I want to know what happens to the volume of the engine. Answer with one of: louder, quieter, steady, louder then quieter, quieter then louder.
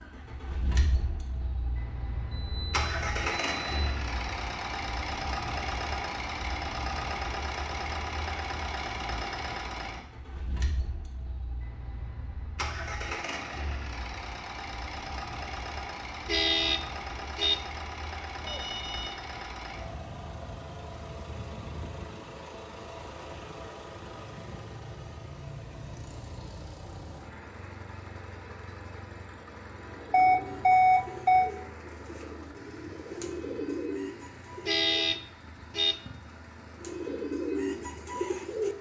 quieter.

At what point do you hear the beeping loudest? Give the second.
31 s.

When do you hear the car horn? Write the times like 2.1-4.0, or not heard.
16.2-17.6, 34.6-36.0.